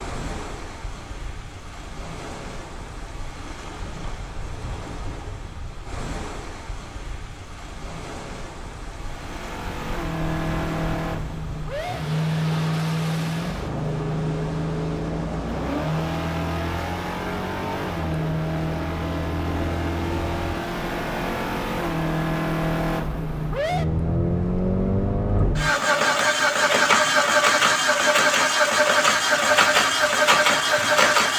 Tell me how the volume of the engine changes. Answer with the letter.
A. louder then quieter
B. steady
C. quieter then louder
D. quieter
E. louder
E.